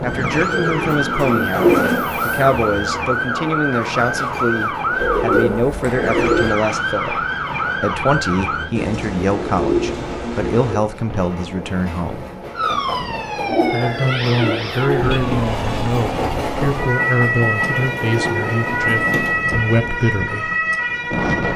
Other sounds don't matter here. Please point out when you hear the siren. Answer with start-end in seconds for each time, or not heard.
0.0-8.7, 12.6-21.5.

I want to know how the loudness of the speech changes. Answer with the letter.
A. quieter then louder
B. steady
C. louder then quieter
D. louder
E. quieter
B.